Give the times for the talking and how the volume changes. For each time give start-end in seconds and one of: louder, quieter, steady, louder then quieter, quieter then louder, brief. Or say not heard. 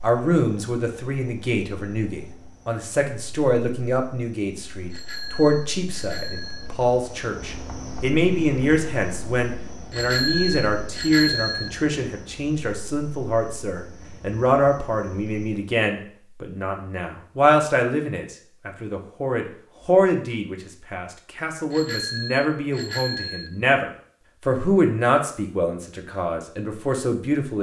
0.0-27.5 steady.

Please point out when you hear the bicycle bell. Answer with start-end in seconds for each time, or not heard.
4.9-6.7, 9.9-11.7, 21.7-23.5.